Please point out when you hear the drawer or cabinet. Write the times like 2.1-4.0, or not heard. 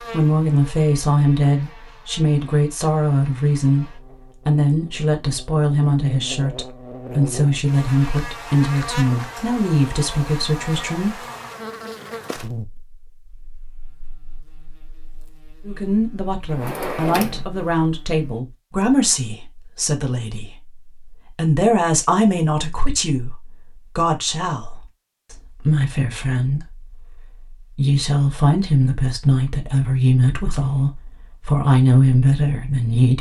16.4-17.4.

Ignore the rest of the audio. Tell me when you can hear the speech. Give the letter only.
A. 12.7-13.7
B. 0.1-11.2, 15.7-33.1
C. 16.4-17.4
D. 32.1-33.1
B.